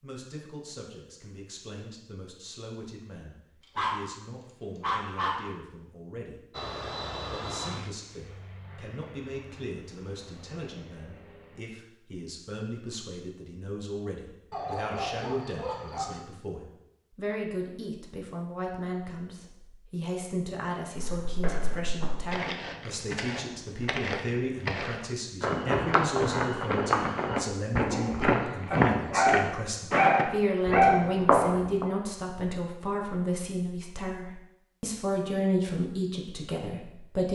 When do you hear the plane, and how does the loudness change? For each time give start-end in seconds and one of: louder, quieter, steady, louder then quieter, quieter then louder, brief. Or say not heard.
6.5-11.7 quieter.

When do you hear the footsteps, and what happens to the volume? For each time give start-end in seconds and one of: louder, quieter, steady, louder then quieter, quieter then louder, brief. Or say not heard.
20.9-31.9 louder.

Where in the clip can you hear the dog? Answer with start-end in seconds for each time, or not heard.
3.6-5.5, 14.5-16.2, 28.7-31.1.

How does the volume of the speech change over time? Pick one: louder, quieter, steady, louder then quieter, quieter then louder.
louder.